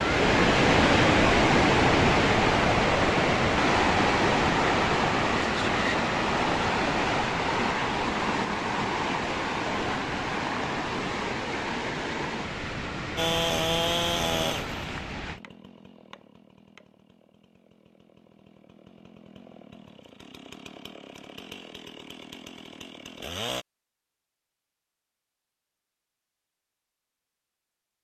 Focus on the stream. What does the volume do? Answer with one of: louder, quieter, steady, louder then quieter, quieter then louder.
quieter.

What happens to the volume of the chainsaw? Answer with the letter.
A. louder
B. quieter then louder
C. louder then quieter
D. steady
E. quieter
B.